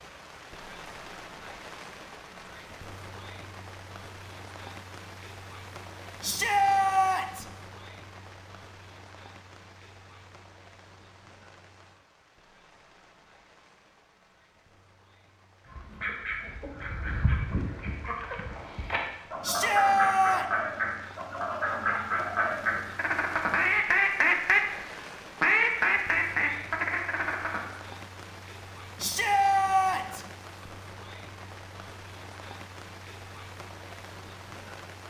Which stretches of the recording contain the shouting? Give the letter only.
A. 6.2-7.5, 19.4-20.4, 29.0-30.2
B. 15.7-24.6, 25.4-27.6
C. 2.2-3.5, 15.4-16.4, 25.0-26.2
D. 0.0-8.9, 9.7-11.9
A.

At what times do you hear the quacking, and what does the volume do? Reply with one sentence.
You can hear the quacking from 15.7 to 24.6 s, getting louder; and briefly from 25.4 to 27.6 s.